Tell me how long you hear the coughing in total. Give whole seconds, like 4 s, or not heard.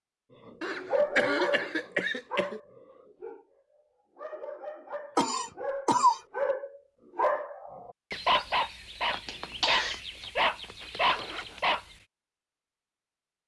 4 s.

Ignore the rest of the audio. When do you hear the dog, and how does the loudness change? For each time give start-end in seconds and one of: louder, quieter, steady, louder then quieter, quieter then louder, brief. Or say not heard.
0.5-11.9 quieter then louder.